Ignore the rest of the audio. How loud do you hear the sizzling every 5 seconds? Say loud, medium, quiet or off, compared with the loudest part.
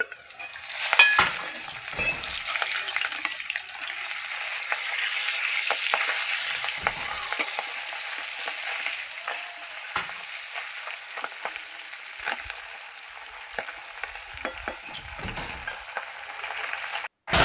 loud, loud, medium, loud.